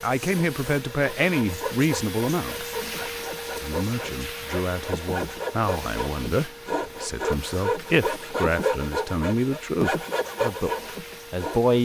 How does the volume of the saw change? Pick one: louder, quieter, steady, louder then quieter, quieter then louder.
louder.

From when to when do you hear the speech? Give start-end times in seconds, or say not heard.
0.0-2.6, 3.6-11.8.